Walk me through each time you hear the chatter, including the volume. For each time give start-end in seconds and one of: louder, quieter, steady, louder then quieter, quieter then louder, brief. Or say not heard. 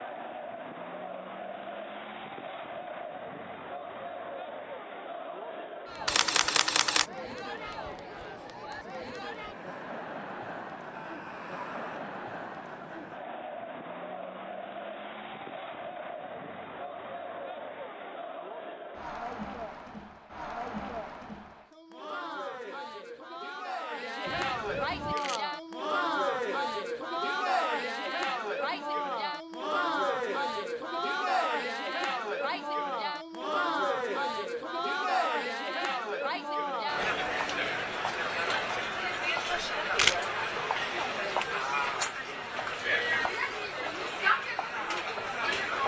0.0-45.8 louder.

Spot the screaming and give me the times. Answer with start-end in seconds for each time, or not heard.
10.9-12.1.